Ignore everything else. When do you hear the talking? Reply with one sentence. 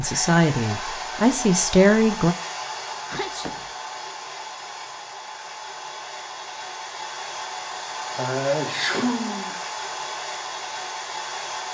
The talking can be heard from 0.0 to 2.4 s.